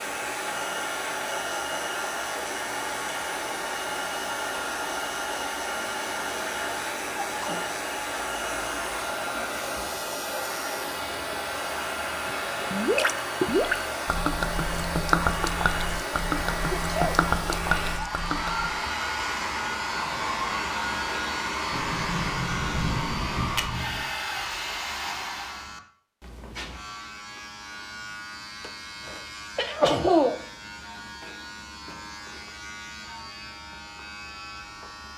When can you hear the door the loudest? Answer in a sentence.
The volume of the door peaks at 23 seconds.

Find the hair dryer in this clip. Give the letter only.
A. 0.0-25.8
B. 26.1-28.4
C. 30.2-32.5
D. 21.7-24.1
A.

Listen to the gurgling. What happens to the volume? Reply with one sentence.
The volume of the gurgling goes down.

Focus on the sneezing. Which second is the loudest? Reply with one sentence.
The volume of the sneezing peaks at 30 seconds.